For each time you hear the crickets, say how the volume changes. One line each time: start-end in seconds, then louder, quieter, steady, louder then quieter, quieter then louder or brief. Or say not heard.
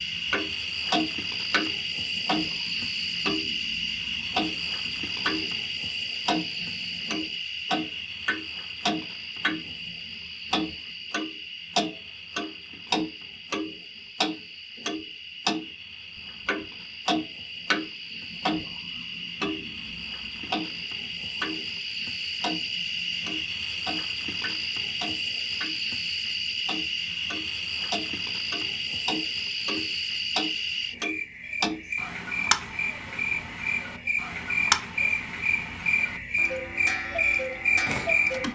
0.0-38.4 quieter then louder.